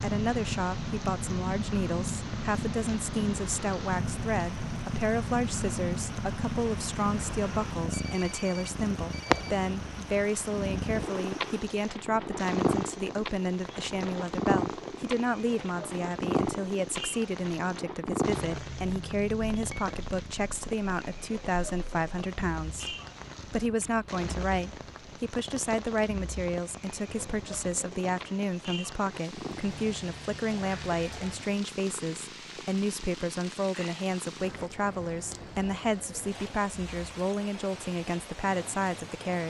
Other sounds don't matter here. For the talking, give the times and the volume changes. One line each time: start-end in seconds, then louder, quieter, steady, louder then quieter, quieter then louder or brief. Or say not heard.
0.0-39.4 steady.